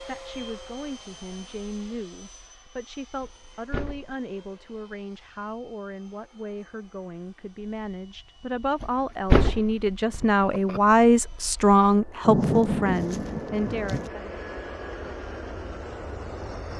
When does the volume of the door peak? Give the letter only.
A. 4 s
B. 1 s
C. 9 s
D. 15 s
C.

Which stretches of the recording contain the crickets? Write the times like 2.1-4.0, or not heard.
not heard.